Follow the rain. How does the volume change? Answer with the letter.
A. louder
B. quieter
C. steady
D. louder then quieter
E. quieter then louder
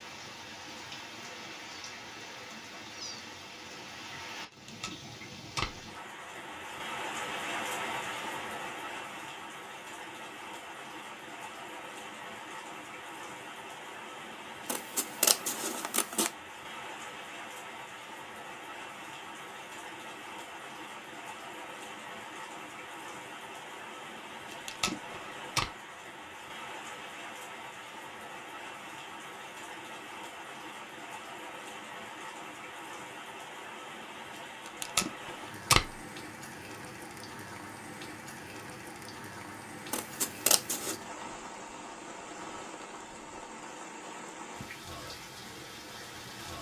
C.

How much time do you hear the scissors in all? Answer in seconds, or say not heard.
3 s.